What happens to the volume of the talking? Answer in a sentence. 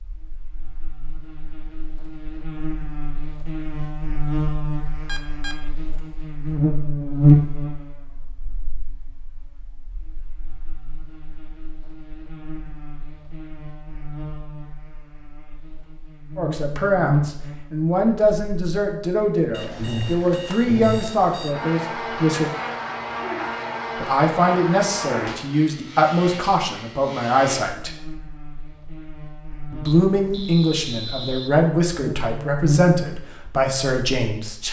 The loudness of the talking stays about the same.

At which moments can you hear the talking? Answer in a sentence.
The talking can be heard from 16.4 to 22.5 s, from 23.9 to 27.9 s and from 29.7 to 34.6 s.